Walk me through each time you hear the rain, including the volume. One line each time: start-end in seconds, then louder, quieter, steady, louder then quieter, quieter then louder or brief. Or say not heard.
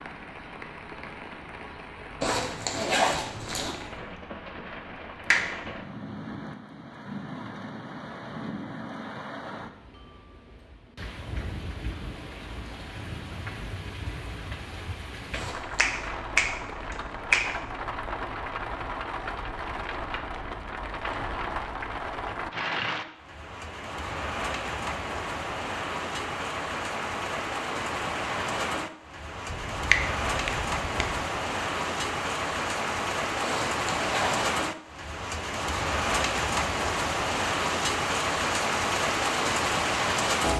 0.0-40.5 louder.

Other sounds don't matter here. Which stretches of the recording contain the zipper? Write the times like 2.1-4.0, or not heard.
2.2-3.8, 15.3-16.1, 33.4-34.5.